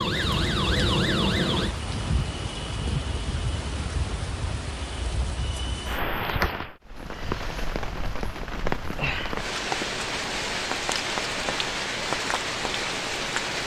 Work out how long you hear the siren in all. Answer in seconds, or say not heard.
2 s.